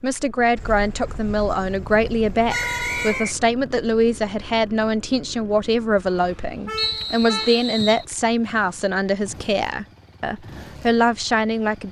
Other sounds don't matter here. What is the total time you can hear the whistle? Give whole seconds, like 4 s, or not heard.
2 s.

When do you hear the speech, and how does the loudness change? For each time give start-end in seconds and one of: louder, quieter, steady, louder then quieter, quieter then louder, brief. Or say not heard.
0.0-11.8 steady.